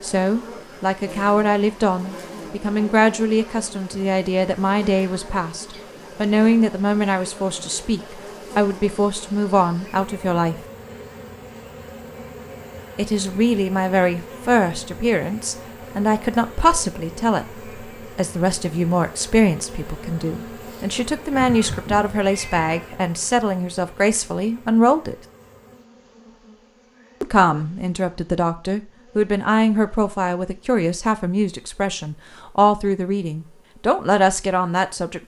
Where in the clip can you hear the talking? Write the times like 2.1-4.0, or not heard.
0.0-10.6, 12.9-25.1, 27.2-35.2.